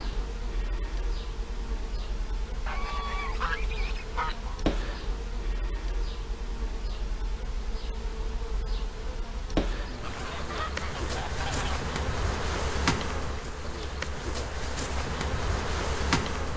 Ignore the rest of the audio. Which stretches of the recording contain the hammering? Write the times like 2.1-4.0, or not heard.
not heard.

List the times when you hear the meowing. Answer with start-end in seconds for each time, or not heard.
not heard.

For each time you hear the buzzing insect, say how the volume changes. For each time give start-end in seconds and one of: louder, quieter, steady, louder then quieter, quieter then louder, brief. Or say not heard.
0.0-16.5 louder.